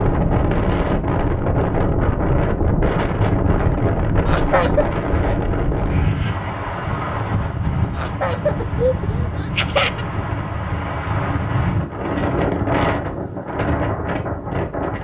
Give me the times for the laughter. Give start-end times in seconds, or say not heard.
4.2-5.0, 8.0-10.1.